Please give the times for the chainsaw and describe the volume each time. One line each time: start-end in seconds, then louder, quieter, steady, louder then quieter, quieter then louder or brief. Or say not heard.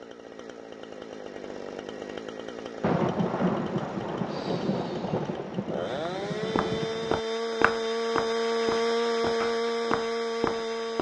0.0-10.9 louder.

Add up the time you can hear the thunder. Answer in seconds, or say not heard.
4 s.